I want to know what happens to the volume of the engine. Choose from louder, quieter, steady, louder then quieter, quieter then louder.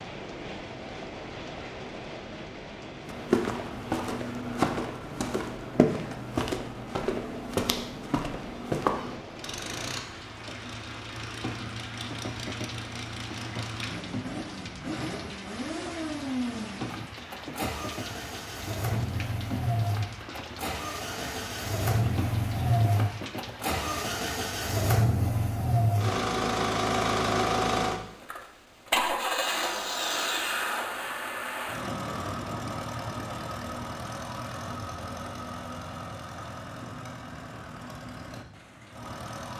louder then quieter.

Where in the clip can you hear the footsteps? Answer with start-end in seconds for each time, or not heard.
3.0-9.2.